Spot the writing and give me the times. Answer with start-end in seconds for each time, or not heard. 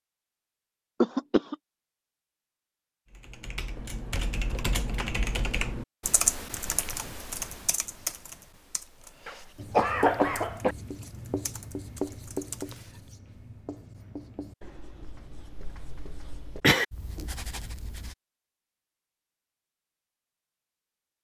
9.6-18.1.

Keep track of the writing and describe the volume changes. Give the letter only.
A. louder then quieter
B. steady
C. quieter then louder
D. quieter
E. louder
C.